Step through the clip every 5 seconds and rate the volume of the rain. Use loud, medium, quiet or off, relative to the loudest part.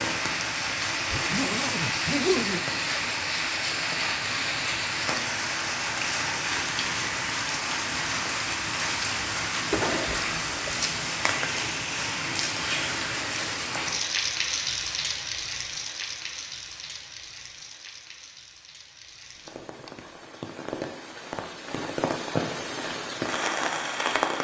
loud, loud, loud, medium, loud.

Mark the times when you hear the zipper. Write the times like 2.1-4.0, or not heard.
1.1-2.6, 9.7-10.8, 19.4-20.1.